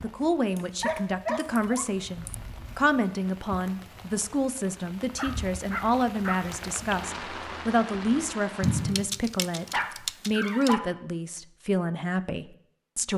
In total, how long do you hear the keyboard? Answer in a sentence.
You can hear the keyboard for 4 seconds altogether.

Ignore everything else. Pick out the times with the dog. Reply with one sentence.
The dog can be heard from 0.8 to 2.8 s, from 5.2 to 6.4 s and from 9.6 to 10.8 s.